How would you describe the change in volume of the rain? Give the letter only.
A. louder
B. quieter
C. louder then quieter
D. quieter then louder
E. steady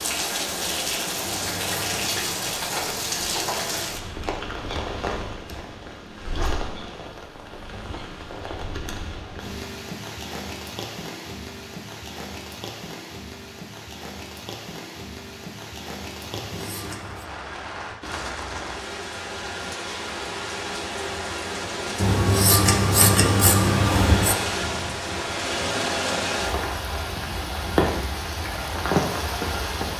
D.